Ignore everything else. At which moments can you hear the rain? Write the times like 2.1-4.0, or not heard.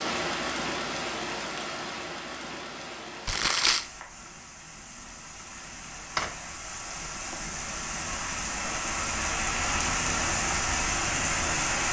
0.0-11.8.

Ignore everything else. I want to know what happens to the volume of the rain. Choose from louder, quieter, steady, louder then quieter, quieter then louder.
quieter then louder.